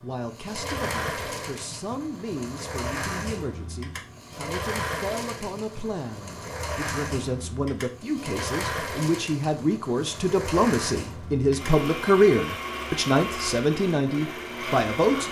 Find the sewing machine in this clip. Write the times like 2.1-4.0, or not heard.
0.0-15.2.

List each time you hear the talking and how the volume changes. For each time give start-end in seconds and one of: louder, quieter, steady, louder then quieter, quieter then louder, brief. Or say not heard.
0.0-15.2 louder.